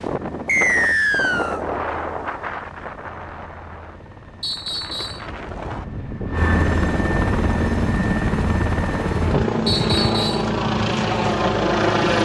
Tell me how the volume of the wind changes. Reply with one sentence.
The loudness of the wind goes down, then up.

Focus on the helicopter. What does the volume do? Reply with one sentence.
The loudness of the helicopter goes up.